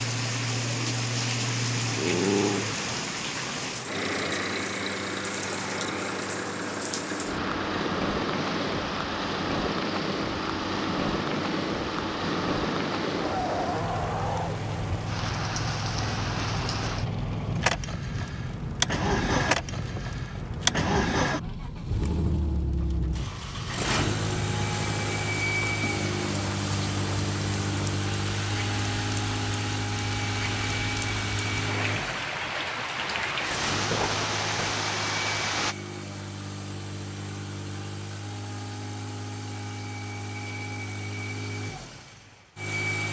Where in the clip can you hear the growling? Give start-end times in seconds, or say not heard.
1.9-2.6.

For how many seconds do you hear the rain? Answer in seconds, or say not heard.
36 s.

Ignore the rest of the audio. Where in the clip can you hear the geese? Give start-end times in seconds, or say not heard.
not heard.